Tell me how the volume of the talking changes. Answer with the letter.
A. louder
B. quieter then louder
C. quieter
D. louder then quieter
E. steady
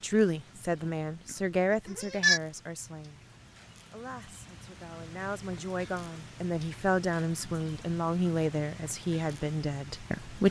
B.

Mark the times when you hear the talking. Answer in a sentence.
You can hear the talking from 0.0 to 3.2 s and from 3.9 to 10.4 s.